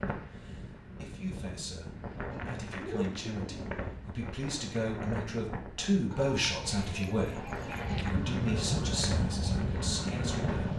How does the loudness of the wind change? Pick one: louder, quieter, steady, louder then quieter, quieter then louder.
steady.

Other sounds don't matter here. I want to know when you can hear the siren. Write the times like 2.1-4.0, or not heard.
7.8-10.7.